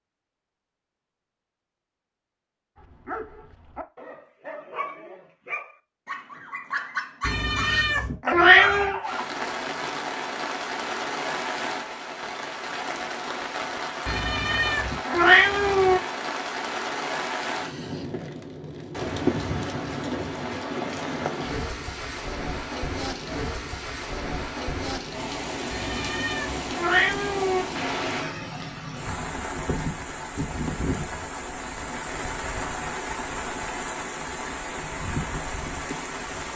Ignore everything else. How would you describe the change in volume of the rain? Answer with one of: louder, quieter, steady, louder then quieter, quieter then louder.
steady.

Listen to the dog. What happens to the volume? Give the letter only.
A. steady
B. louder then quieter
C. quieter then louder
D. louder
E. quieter
D.